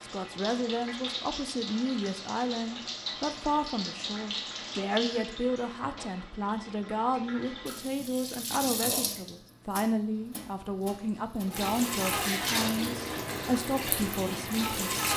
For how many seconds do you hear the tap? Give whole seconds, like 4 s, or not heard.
15 s.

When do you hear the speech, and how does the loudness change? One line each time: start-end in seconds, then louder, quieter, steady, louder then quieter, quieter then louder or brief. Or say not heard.
0.0-15.1 steady.